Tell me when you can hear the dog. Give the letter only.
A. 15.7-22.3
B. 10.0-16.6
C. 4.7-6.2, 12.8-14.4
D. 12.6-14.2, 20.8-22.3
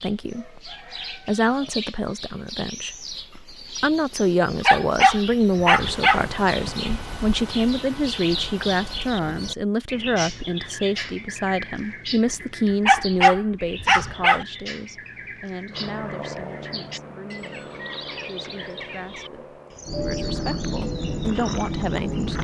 C.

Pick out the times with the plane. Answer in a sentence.
The plane can be heard from 15.7 to 22.3 s.